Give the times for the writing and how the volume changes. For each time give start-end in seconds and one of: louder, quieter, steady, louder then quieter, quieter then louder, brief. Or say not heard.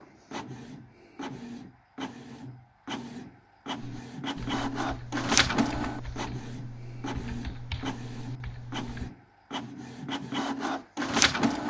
not heard.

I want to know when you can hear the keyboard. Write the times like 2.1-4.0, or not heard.
3.8-9.1.